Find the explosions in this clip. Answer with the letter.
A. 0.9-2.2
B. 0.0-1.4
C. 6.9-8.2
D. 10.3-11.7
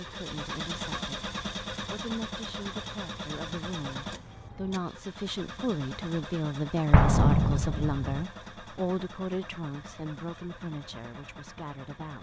C.